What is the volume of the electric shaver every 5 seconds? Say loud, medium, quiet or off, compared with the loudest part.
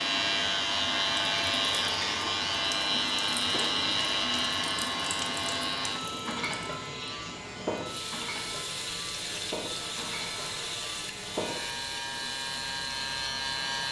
loud, medium, medium.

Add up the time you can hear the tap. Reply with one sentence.
The tap can be heard for 14 seconds in total.